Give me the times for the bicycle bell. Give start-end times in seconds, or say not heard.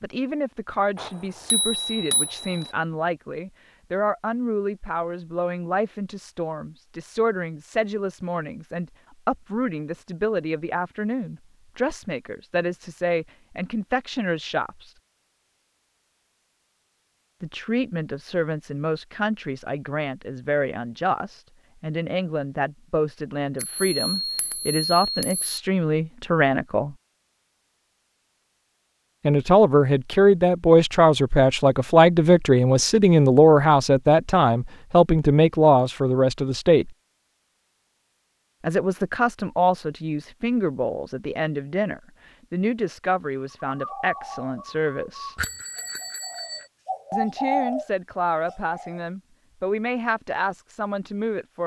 0.9-2.7, 23.6-25.6, 45.4-46.6.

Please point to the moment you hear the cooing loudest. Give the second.
48 s.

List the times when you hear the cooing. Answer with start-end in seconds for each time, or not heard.
43.6-49.0.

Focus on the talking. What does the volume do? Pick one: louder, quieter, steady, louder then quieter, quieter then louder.
louder then quieter.